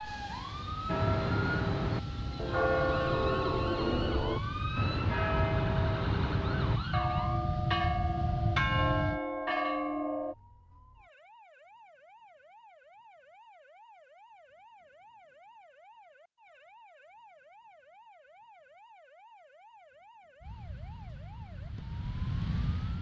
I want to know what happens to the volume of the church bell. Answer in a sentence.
The volume of the church bell stays about the same.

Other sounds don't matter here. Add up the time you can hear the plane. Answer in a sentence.
The plane can be heard for 12 seconds in total.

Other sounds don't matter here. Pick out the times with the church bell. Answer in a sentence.
You can hear the church bell from 0.8 to 10.3 s.